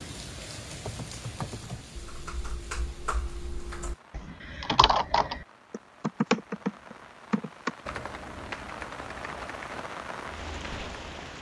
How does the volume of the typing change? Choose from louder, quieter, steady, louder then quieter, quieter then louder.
louder then quieter.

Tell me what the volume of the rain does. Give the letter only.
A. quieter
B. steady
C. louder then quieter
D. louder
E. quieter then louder
E.